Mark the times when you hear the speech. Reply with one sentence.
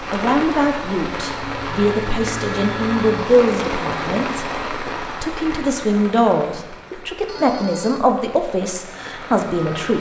You can hear the speech from 0.0 to 9.9 s.